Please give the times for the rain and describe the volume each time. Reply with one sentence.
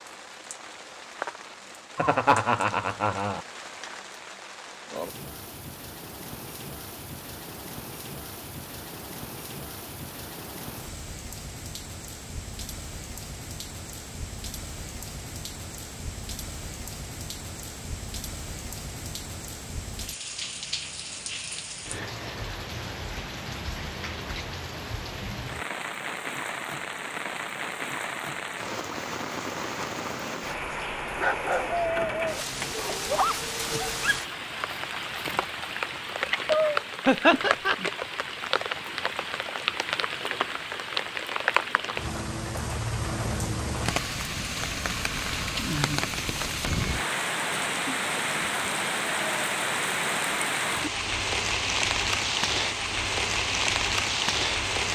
You can hear the rain from 0.0 to 54.8 s, getting louder.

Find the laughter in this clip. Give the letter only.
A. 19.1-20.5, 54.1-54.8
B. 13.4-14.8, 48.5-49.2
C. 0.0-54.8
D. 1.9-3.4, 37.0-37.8
D.